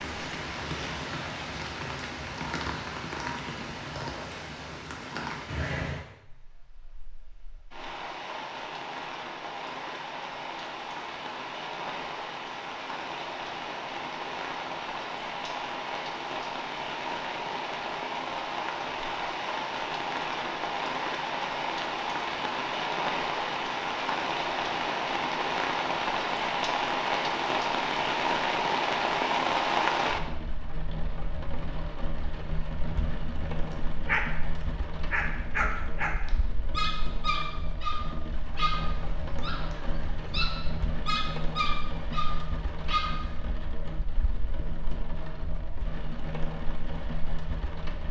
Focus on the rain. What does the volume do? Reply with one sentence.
The volume of the rain goes up, then down.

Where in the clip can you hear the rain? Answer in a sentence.
You can hear the rain from 0.0 to 48.0 s.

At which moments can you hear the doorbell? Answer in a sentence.
You can't hear the doorbell here.